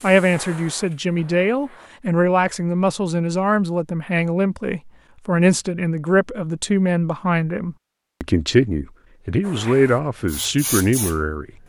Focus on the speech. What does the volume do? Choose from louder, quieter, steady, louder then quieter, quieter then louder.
steady.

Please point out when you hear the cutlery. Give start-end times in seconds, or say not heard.
not heard.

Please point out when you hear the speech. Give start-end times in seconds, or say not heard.
0.0-11.4.